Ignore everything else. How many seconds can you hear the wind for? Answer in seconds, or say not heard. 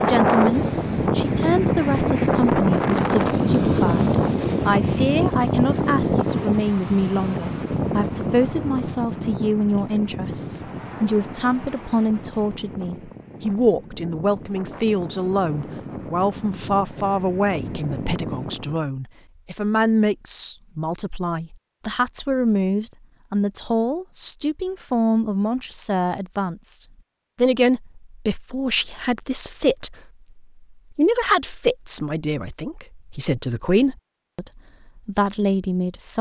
19 s.